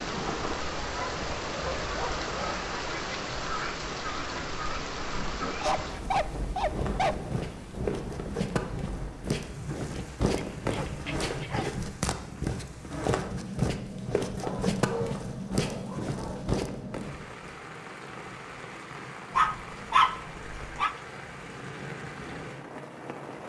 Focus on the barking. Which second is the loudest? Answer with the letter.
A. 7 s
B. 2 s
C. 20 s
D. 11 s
C.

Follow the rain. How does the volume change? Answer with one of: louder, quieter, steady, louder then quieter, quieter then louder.
quieter.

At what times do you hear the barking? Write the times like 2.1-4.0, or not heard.
0.8-2.7, 5.6-7.3, 9.8-11.8, 14.4-16.4, 19.4-20.9.